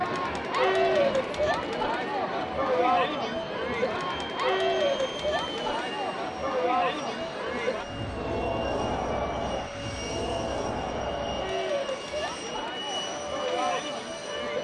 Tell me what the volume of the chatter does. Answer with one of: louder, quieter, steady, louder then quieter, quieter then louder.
quieter.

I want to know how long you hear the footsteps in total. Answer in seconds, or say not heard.
not heard.